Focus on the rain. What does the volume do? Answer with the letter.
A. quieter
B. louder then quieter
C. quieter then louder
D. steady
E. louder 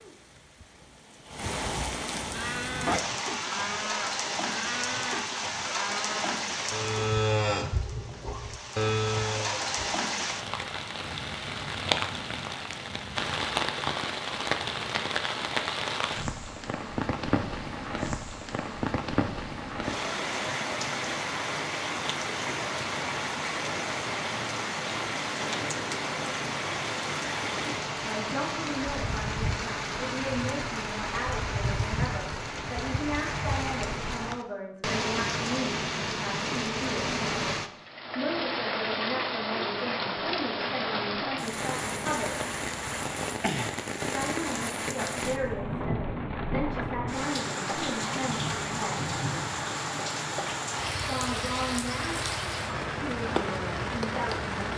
D.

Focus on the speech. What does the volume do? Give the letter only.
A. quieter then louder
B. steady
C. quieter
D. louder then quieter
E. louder
B.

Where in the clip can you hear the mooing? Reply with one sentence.
You can hear the mooing from 2.3 to 9.8 s.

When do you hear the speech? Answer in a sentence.
You can hear the speech from 28.1 to 37.1 s, from 38.1 to 42.4 s, from 44.1 to 49.1 s and from 51.0 to 54.7 s.